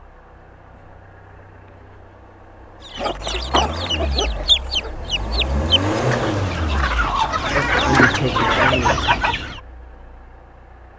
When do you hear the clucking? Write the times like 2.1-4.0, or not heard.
3.0-9.6.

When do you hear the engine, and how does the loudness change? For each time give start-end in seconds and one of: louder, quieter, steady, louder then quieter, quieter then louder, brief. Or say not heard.
0.0-10.9 louder then quieter.